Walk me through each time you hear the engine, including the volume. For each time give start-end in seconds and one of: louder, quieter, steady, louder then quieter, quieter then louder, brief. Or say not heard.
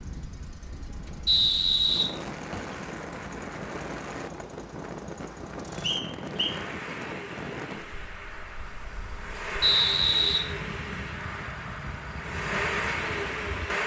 0.0-13.8 louder.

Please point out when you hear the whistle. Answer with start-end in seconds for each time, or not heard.
1.2-2.8, 5.8-6.5, 9.6-10.4.